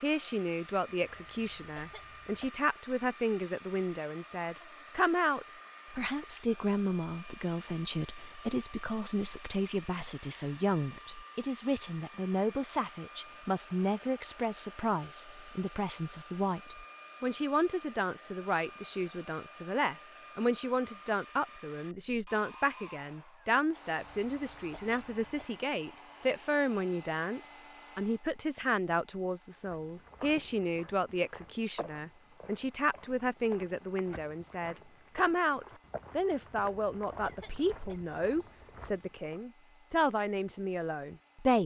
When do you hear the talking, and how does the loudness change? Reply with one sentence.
You can hear the talking from 0.0 to 41.6 s, at a steady volume.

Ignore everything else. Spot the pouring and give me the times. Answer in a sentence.
The pouring can't be heard in this clip.